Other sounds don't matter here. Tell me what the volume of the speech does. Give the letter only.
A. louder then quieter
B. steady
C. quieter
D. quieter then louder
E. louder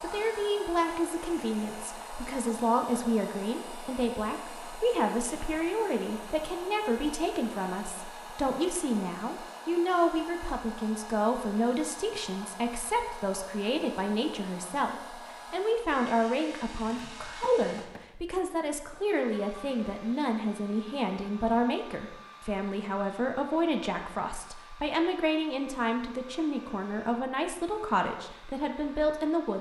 B.